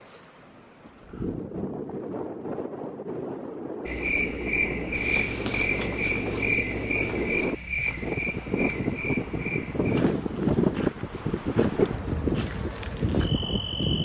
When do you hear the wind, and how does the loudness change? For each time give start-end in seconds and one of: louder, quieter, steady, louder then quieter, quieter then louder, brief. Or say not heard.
0.0-14.0 louder.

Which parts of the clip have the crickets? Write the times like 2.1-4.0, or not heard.
3.9-14.0.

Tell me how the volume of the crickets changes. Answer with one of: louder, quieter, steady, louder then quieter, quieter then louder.
quieter.